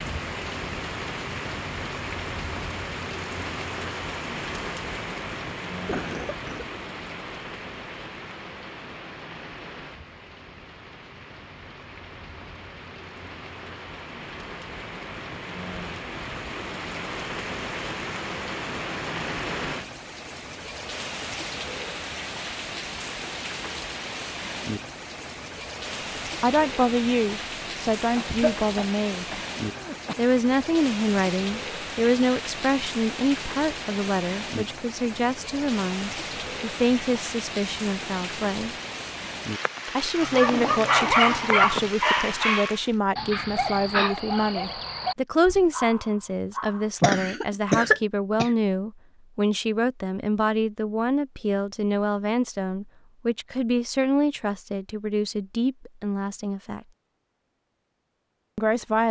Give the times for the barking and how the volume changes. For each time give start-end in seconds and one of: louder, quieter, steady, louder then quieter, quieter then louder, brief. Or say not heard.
40.1-46.9 quieter.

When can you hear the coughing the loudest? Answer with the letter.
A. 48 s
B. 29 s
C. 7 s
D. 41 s
A.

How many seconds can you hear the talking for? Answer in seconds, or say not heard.
29 s.